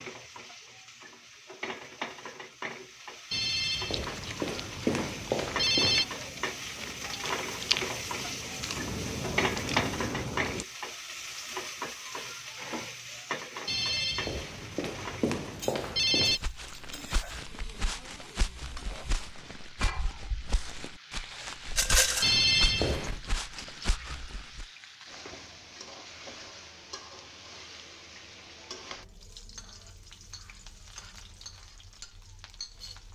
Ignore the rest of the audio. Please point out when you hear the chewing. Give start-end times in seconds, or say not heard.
3.9-10.7.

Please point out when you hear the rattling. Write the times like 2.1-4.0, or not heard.
21.8-22.4.